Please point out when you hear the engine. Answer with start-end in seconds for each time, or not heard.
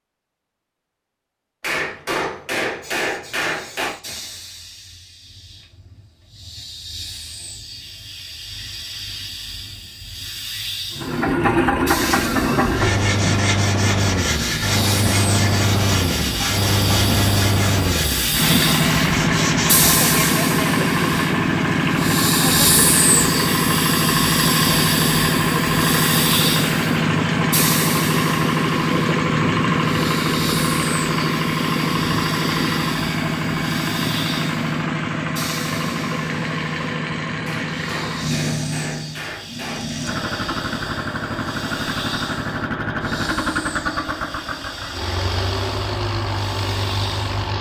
10.9-47.5.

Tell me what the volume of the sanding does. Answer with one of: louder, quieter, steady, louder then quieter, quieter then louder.
steady.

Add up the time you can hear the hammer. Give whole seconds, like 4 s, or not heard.
5 s.